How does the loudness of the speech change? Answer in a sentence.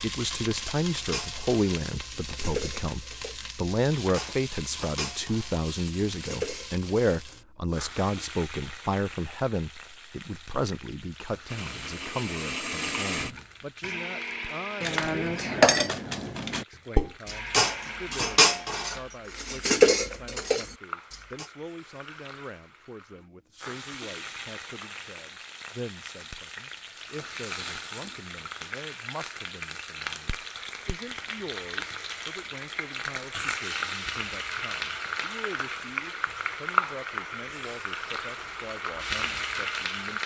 The loudness of the speech goes down.